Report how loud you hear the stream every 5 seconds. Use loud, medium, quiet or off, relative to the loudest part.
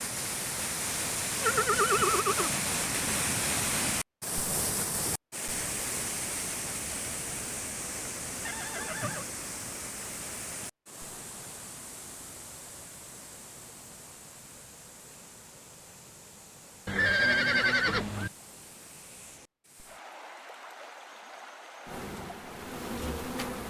loud, medium, quiet, quiet, quiet.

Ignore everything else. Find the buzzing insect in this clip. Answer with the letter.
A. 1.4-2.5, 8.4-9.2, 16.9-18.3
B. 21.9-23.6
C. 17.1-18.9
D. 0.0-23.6
B.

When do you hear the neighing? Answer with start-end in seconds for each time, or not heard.
1.4-2.5, 8.4-9.2, 16.9-18.3.